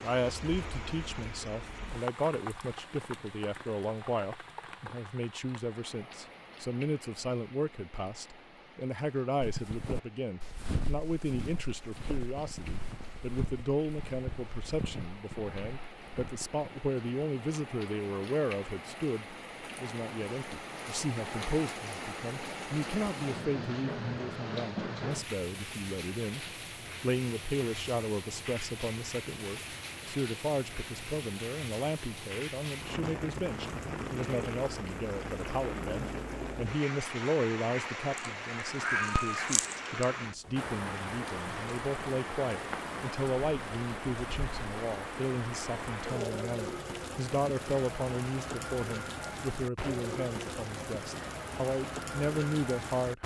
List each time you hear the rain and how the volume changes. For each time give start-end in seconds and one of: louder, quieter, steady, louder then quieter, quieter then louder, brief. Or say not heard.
0.0-53.2 louder.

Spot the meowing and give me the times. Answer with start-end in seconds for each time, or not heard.
38.1-40.0.